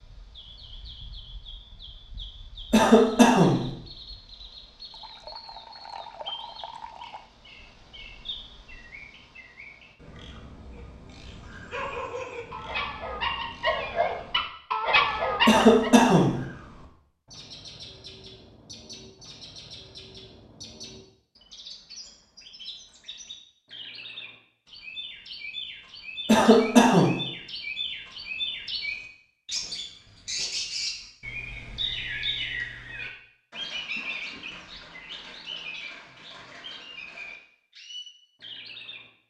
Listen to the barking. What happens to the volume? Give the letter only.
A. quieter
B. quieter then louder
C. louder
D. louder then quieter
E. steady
C.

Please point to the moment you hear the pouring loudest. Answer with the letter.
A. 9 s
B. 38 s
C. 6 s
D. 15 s
C.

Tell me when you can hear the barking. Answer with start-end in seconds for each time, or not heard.
10.7-15.9.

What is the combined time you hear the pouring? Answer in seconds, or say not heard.
2 s.